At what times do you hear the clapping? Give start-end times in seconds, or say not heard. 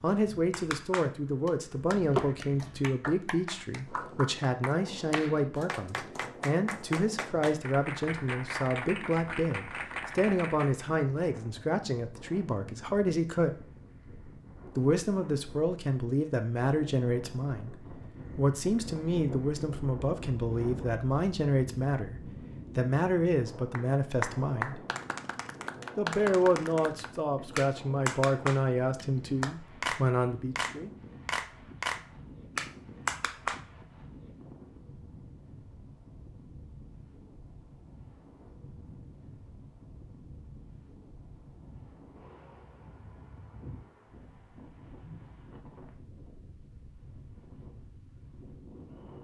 0.5-10.8, 23.7-33.6.